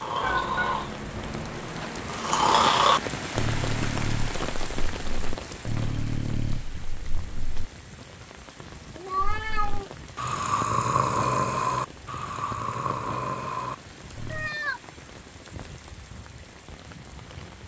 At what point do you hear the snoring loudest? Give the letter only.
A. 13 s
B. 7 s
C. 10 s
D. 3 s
D.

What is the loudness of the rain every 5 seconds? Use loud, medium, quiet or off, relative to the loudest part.
loud, medium, medium, medium.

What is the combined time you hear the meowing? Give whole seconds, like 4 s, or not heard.
3 s.